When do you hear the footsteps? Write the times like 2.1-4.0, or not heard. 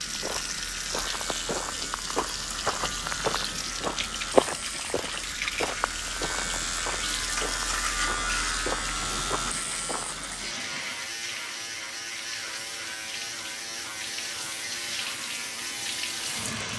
0.0-10.3.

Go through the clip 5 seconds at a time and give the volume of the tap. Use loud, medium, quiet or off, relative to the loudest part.
loud, loud, medium, loud.